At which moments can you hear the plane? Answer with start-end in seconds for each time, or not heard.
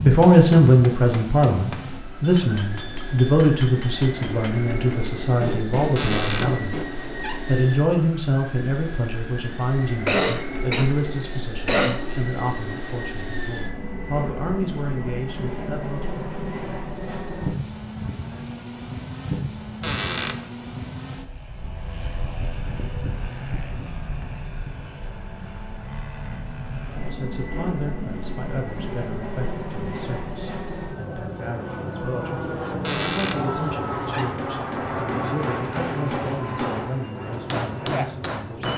0.0-38.7.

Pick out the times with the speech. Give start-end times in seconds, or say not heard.
0.0-6.8, 7.5-16.2, 26.8-38.7.